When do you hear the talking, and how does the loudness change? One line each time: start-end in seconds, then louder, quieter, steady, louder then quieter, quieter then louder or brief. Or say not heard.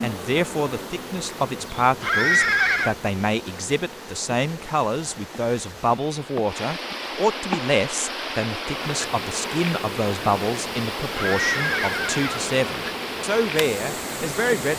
0.0-14.7 steady.